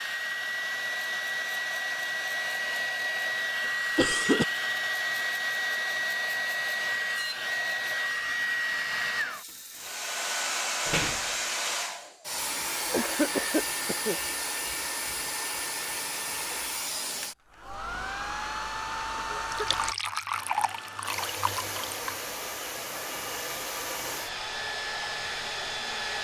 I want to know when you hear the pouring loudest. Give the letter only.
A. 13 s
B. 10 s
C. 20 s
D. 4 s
C.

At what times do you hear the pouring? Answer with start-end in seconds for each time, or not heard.
19.5-22.2.